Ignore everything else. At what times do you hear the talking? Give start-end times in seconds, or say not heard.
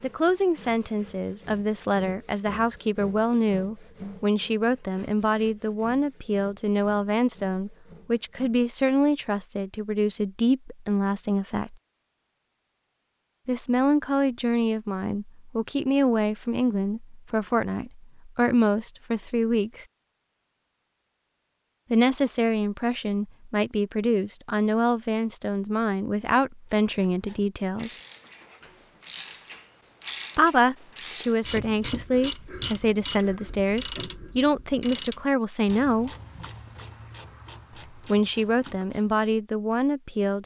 0.0-11.8, 13.4-19.9, 21.9-28.0, 30.4-36.1, 38.0-40.4.